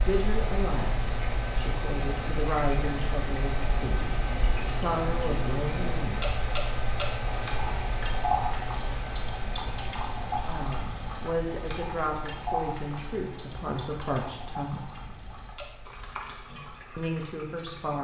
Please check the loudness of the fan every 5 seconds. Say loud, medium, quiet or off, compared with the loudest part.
loud, loud, medium, quiet.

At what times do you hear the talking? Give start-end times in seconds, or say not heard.
0.0-6.4, 10.4-14.8, 16.9-17.9.